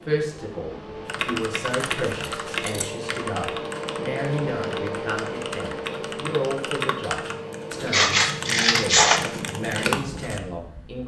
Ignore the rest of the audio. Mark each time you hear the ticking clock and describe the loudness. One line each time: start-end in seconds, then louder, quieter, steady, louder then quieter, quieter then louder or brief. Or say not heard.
not heard.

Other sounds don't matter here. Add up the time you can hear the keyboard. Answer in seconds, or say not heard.
9 s.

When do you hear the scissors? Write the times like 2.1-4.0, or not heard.
1.9-2.9, 7.8-9.2.